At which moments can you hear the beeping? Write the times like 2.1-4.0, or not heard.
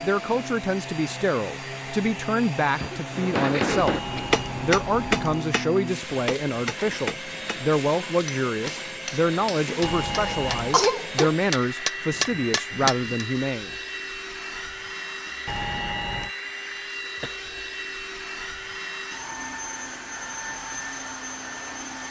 3.6-5.5, 9.8-10.8, 15.4-16.4.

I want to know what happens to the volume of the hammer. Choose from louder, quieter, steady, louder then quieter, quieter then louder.
quieter then louder.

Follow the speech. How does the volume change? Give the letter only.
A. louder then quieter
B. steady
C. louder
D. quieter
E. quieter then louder
B.